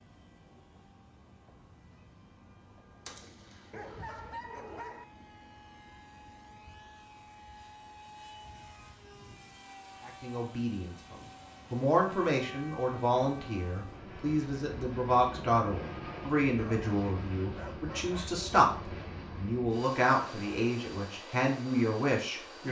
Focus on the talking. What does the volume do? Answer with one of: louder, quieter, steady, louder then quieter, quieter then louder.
steady.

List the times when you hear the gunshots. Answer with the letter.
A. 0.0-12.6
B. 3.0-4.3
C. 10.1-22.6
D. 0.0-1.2
B.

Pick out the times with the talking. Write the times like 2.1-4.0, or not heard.
10.1-22.6.